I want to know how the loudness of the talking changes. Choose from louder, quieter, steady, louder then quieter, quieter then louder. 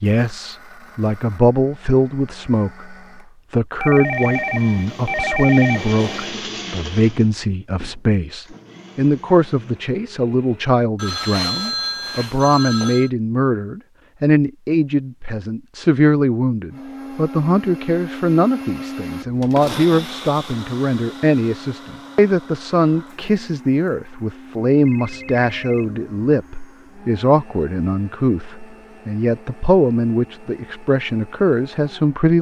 steady.